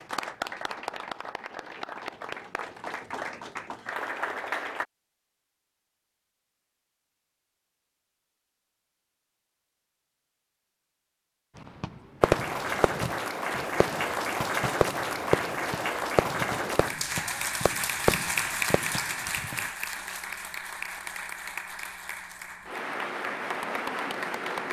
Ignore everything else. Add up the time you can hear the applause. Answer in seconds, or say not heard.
17 s.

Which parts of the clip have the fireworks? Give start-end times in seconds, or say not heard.
11.8-19.6.